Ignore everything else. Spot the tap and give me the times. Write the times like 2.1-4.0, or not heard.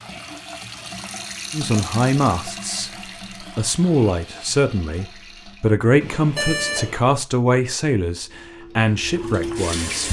0.0-5.7, 8.2-10.0.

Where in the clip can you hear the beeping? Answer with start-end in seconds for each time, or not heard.
6.0-7.0.